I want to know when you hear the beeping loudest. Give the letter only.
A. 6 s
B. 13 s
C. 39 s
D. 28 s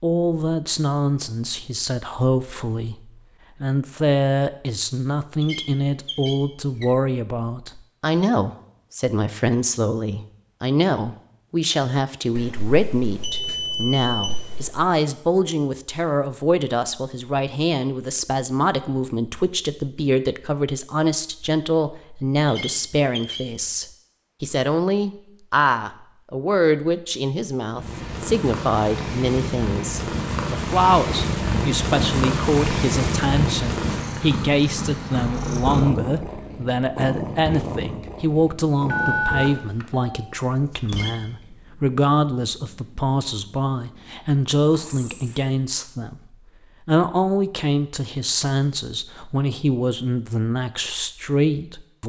C.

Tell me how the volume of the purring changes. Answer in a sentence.
The loudness of the purring goes down.